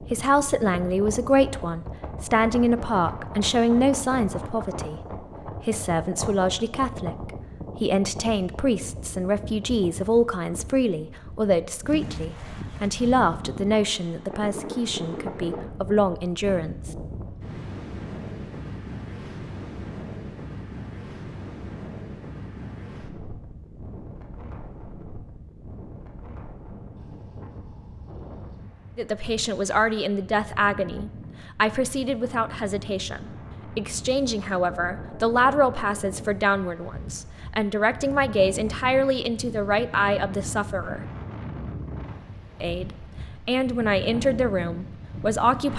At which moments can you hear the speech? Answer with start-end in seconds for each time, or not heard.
0.0-16.9, 28.9-41.0, 42.6-45.7.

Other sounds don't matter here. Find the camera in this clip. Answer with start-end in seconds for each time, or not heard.
not heard.